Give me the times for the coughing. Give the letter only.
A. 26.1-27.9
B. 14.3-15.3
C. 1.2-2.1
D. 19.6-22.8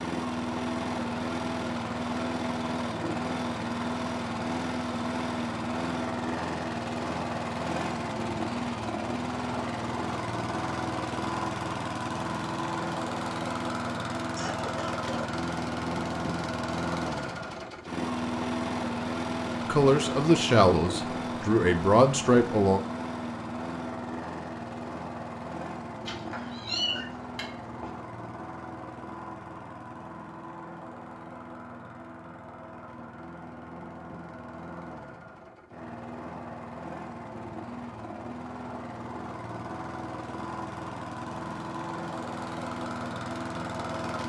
B.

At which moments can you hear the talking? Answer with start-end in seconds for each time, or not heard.
19.6-22.8.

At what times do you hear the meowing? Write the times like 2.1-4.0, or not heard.
26.1-27.9.